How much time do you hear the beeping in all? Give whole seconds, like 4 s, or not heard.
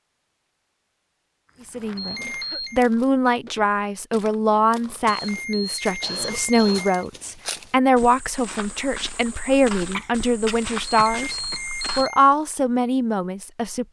4 s.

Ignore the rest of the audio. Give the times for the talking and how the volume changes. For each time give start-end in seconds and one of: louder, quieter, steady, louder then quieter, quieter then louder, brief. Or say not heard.
1.6-11.3 steady
11.9-13.8 brief.